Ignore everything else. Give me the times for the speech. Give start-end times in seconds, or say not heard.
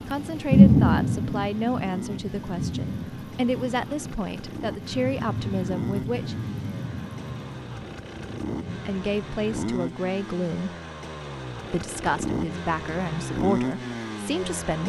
0.1-6.3, 8.8-10.8, 11.7-14.8.